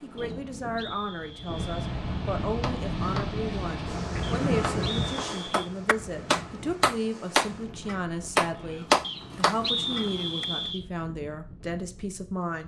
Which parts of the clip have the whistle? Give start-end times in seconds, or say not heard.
0.1-1.7, 4.2-5.7, 9.0-10.8.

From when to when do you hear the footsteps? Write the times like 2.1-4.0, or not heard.
not heard.